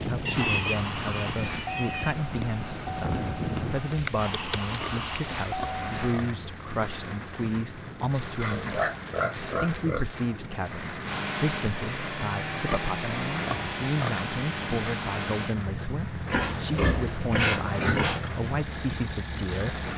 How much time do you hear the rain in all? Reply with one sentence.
The rain can be heard for 20 seconds in total.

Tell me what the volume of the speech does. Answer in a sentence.
The volume of the speech stays about the same.